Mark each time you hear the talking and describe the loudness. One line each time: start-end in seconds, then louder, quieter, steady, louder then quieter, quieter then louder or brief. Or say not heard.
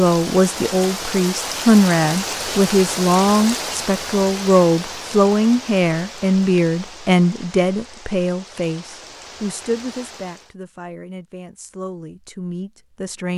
0.0-13.3 quieter.